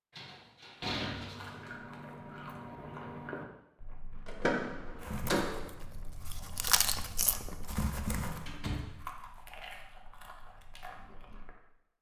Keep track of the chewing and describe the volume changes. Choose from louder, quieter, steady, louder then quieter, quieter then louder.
louder then quieter.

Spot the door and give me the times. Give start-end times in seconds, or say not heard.
0.1-1.7, 4.2-5.7, 8.2-8.9.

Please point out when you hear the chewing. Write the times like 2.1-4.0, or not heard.
1.1-11.5.